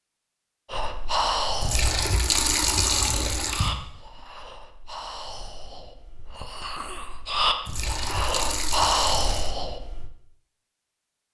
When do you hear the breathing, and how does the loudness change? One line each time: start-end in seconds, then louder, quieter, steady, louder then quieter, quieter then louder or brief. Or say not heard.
0.7-10.1 quieter then louder.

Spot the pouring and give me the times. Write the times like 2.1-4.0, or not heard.
1.6-3.8, 7.7-9.5.